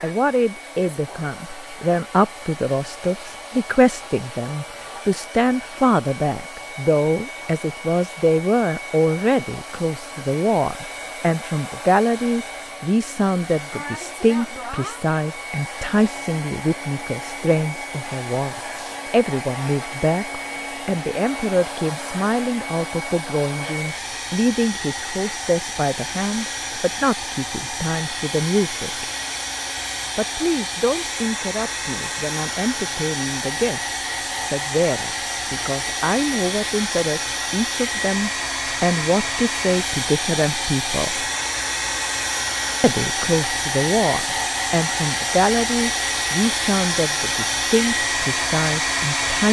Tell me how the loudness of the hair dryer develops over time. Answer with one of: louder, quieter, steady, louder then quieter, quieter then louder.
louder.